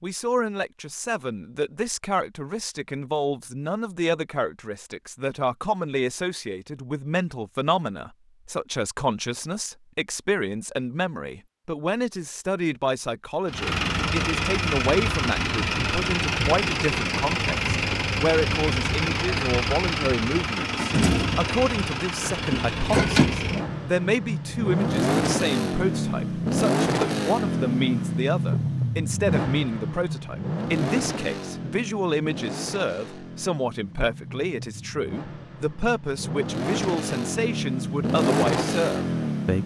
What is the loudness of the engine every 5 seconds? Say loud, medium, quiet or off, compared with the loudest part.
off, off, loud, loud, loud, loud, medium, loud.